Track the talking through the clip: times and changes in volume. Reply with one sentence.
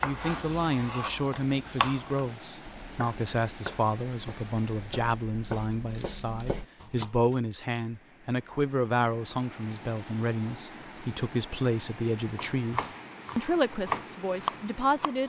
The talking can be heard from 0.0 to 15.2 s, at a steady volume.